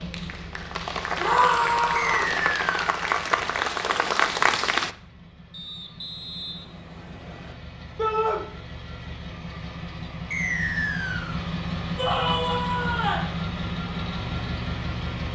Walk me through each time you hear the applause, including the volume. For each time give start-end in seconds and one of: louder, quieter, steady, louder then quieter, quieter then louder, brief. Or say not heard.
0.0-5.0 louder.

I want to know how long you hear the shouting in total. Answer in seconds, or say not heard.
3 s.